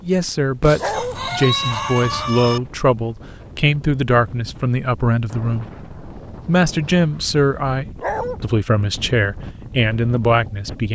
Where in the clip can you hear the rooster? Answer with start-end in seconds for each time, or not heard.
0.6-2.6.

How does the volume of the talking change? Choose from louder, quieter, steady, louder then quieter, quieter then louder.
steady.